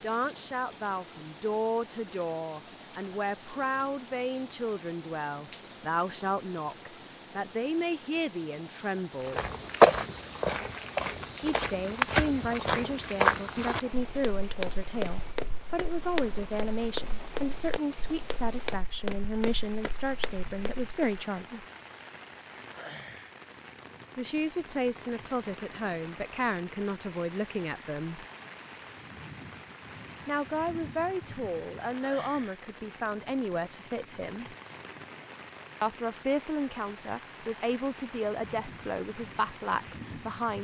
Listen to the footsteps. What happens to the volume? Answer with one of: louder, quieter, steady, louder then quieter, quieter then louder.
quieter.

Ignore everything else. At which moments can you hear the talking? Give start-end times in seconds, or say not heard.
0.0-9.4, 11.4-21.6, 24.1-28.2, 30.2-34.5, 35.8-40.5.